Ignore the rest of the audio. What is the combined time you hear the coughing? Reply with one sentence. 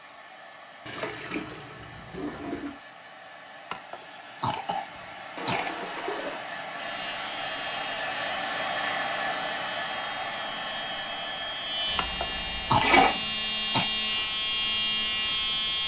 The coughing can be heard for 4 seconds in total.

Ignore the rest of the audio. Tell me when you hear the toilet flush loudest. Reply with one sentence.
The volume of the toilet flush peaks at 13 seconds.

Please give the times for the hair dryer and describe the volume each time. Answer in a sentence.
The hair dryer can be heard from 0.0 to 15.8 s, getting louder then quieter.